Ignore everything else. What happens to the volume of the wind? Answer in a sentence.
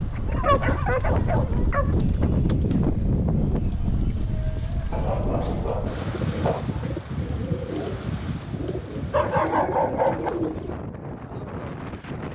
The loudness of the wind goes down.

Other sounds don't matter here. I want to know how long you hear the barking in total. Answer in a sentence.
You can hear the barking for 5 seconds altogether.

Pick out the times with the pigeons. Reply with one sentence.
You can hear the pigeons from 0.5 to 10.8 s.